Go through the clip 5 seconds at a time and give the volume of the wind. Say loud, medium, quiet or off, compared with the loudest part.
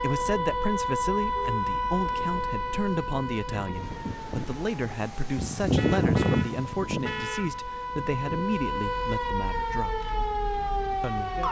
quiet, loud, quiet.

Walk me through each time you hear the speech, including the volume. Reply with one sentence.
The speech can be heard from 0.0 to 10.1 s, at a steady volume; and briefly from 11.0 to 11.4 s.